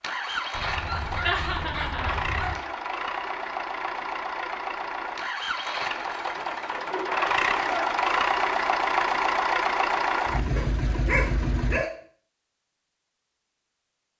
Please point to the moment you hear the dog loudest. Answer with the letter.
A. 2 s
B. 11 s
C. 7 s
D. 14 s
B.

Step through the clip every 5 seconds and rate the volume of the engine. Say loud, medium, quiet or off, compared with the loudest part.
medium, loud, loud.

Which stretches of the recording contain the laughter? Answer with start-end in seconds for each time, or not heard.
1.2-2.6.